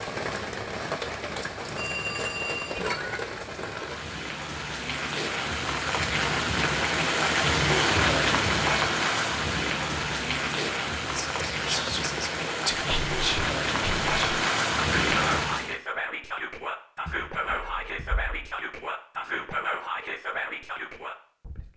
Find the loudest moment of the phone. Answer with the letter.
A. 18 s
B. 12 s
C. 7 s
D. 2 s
D.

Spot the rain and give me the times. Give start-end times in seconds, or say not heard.
0.0-15.8.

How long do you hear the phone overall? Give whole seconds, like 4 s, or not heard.
3 s.